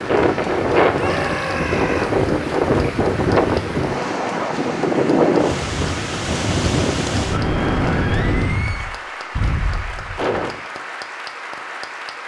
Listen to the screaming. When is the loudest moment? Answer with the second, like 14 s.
1 s.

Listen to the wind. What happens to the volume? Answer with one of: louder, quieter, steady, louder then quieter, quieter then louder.
quieter.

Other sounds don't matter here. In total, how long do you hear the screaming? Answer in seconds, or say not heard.
3 s.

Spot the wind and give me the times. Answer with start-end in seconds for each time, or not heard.
0.0-10.6.